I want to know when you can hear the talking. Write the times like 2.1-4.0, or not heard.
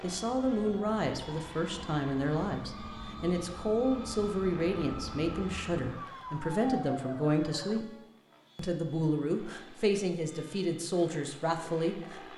0.0-7.9, 8.6-12.2.